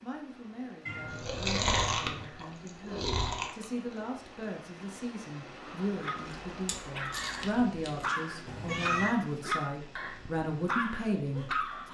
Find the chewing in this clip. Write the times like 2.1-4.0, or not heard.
1.1-3.6, 6.2-8.1.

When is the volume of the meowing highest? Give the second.
9 s.